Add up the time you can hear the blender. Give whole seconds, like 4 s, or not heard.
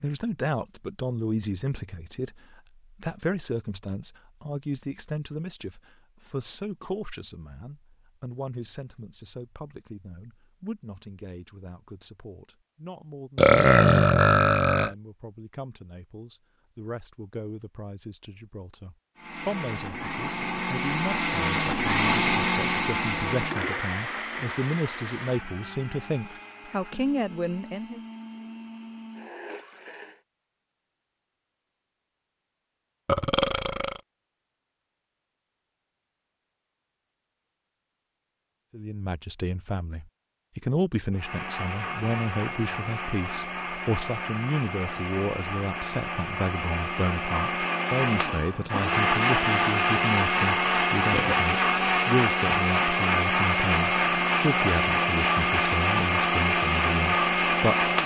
28 s.